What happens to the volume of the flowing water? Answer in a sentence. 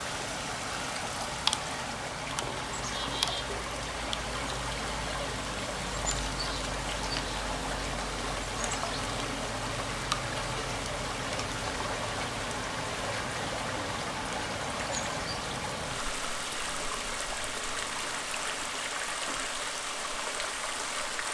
The volume of the flowing water stays about the same.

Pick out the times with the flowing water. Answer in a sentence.
You can hear the flowing water from 0.0 to 21.2 s.